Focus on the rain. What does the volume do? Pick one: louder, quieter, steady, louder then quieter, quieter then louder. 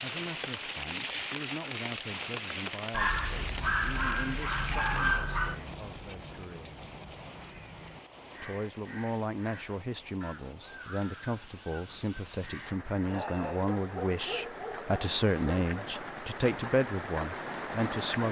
quieter then louder.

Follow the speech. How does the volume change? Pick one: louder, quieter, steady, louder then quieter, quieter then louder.
louder.